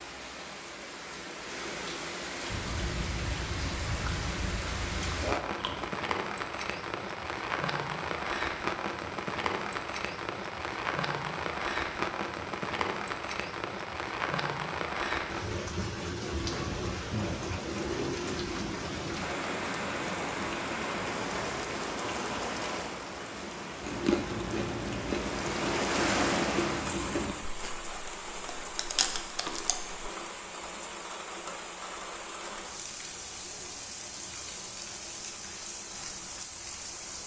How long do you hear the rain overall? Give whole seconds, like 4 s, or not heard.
37 s.